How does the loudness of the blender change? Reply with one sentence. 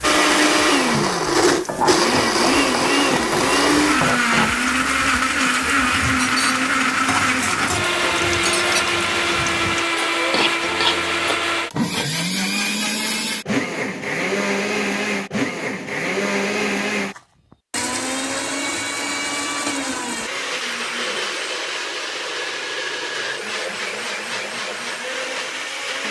The loudness of the blender goes down.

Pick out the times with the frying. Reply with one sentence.
The frying can be heard from 0.0 to 11.6 s.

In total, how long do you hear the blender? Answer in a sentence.
The blender can be heard for 26 seconds in total.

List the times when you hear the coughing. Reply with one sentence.
You can't hear the coughing here.